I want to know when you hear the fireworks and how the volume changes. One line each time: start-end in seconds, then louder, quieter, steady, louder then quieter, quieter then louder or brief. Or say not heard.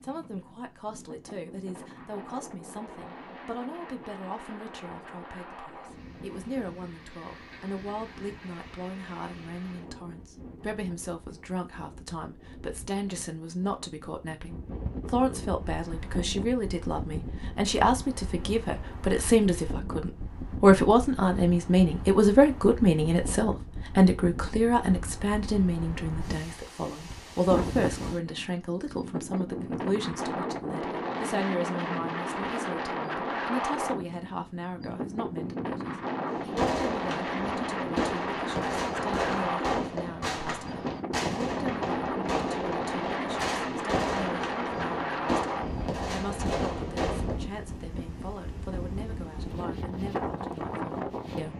36.3-47.4 steady.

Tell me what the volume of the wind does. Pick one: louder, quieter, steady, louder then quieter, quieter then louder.
louder.